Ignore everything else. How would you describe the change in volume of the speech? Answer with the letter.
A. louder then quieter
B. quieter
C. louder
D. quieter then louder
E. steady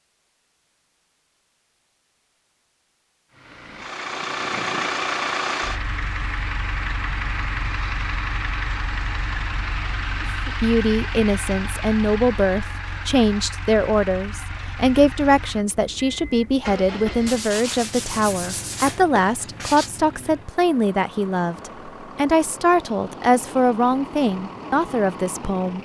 E.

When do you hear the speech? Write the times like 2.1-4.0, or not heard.
10.2-25.8.